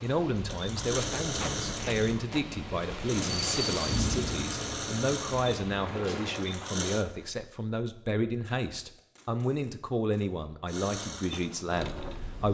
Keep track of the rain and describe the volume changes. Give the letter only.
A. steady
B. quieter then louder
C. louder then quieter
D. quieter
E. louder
C.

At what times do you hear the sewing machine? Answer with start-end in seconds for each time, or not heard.
0.0-7.0, 10.7-12.4.